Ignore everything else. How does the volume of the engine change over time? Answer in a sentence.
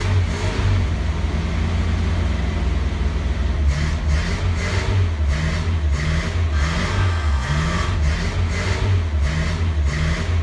The volume of the engine stays about the same.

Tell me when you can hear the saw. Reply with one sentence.
You can hear the saw from 6.5 to 8.0 s.